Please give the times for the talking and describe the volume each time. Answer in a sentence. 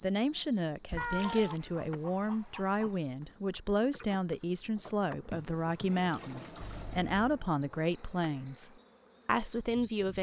You can hear the talking from 0.0 to 10.1 s, at a steady volume.